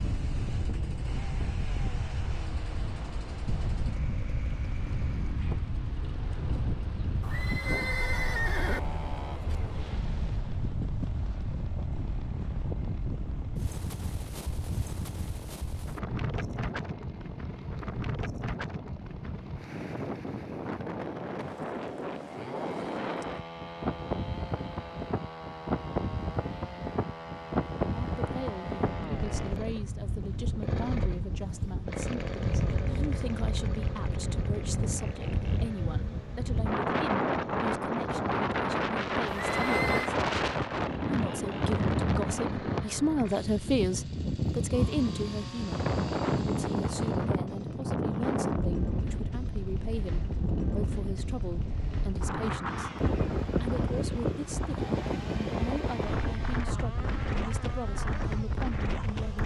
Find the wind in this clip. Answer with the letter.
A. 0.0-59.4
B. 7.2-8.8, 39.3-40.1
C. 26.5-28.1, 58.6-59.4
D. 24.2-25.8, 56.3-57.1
A.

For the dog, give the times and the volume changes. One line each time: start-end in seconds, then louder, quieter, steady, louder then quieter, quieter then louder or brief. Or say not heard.
not heard.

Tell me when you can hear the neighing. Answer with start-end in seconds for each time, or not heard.
7.2-8.8, 39.3-40.1.